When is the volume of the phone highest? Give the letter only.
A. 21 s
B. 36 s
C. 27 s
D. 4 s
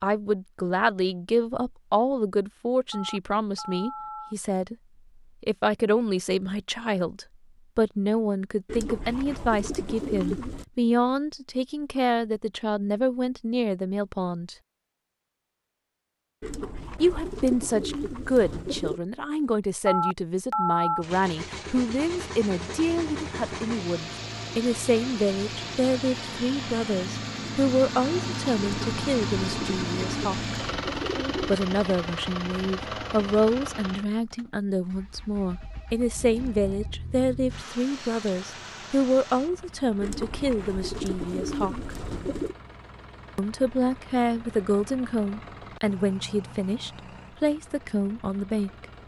A.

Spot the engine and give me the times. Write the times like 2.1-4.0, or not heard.
21.0-49.0.